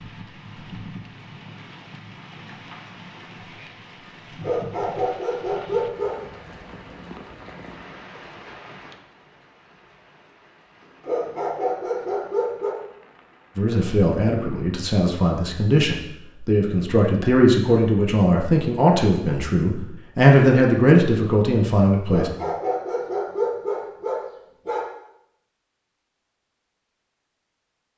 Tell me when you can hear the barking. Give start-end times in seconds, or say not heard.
4.4-6.2, 11.0-12.8, 22.1-24.9.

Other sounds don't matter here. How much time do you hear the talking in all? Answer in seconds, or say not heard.
9 s.